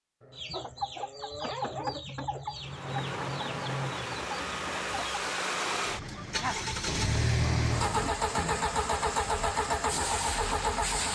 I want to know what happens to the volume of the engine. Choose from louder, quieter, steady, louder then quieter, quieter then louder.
louder.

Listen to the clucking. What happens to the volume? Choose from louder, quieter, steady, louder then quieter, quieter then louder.
quieter.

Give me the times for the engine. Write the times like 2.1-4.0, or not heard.
2.5-11.1.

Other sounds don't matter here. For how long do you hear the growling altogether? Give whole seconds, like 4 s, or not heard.
4 s.